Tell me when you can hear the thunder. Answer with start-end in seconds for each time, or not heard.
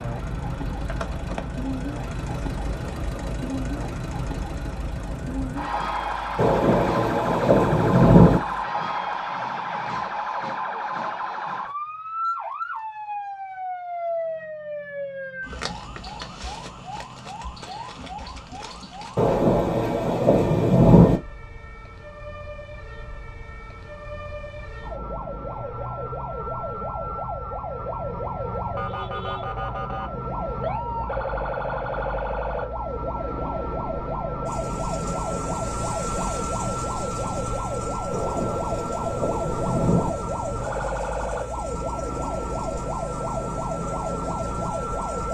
6.3-8.4, 19.1-21.2, 38.1-40.1.